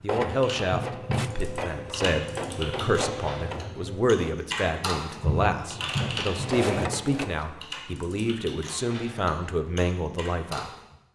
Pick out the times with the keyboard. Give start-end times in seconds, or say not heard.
0.2-10.9.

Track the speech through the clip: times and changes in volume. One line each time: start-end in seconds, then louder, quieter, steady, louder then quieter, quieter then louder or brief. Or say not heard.
0.0-10.7 steady.